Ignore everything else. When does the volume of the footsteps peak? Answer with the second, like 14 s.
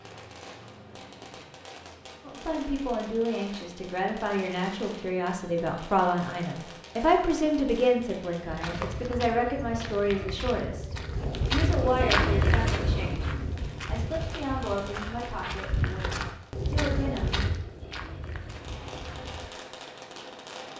12 s.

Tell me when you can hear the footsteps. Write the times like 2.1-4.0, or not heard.
8.4-19.5.